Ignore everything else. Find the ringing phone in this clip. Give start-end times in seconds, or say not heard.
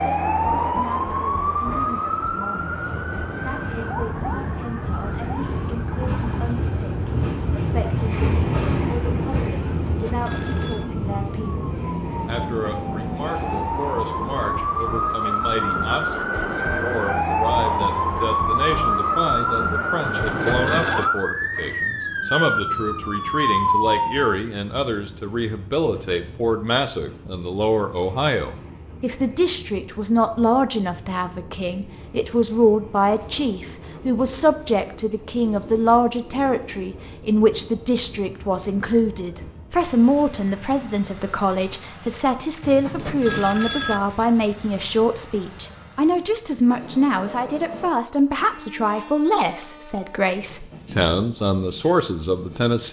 9.8-10.9, 20.0-21.1, 42.6-44.0.